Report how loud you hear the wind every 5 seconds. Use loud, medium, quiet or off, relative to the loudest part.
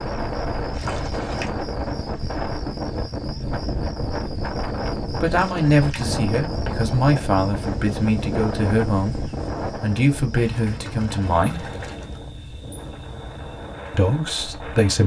loud, loud, medium.